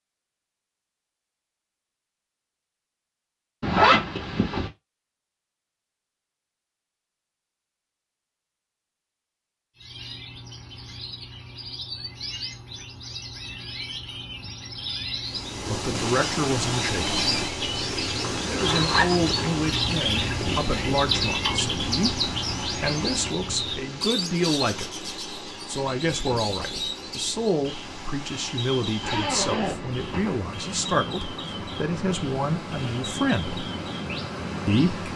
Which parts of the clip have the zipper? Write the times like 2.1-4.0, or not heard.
3.6-4.7, 18.2-19.6, 29.0-30.4.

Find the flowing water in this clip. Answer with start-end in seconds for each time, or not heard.
15.2-35.1.